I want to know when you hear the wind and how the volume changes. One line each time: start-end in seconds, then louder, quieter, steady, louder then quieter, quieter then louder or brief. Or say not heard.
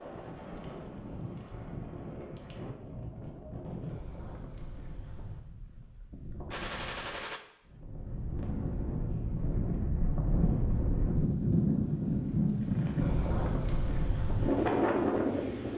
0.0-15.7 louder.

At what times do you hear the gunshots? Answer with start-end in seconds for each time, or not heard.
6.5-7.4.